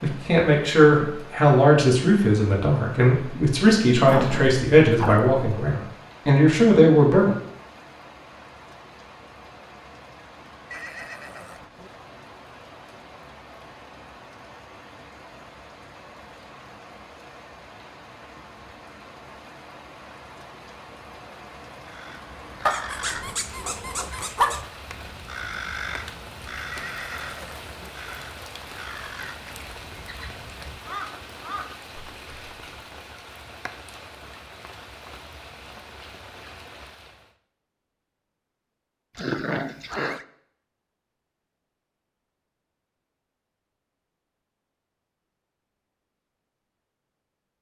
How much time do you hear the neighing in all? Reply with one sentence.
The neighing can be heard for 3 seconds in total.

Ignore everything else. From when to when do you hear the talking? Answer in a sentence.
The talking can be heard from 0.0 to 7.3 s.